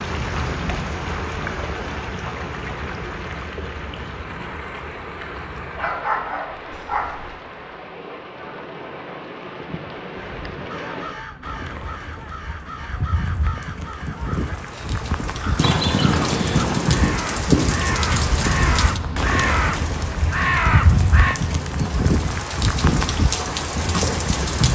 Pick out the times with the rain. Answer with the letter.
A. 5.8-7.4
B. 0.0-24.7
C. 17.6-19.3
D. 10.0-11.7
B.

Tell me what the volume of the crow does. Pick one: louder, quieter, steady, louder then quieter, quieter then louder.
louder.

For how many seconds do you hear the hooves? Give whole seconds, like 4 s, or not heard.
9 s.